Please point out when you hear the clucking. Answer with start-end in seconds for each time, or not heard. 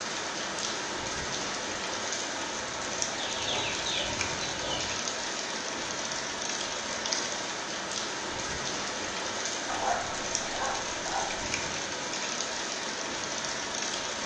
3.1-5.0.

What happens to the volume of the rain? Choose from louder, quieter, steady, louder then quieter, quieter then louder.
steady.